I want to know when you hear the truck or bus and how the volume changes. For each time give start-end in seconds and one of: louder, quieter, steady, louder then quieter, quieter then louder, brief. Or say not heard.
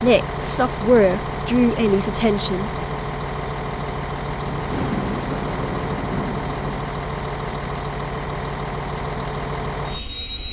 0.0-10.4 steady.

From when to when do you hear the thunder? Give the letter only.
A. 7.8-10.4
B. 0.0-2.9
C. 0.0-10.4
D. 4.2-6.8
D.